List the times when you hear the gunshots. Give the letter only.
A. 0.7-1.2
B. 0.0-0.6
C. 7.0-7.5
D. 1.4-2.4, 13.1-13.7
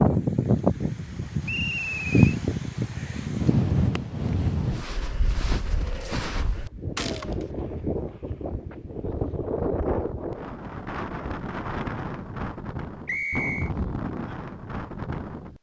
C.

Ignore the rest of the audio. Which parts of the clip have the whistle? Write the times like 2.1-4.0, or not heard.
1.4-2.4, 13.1-13.7.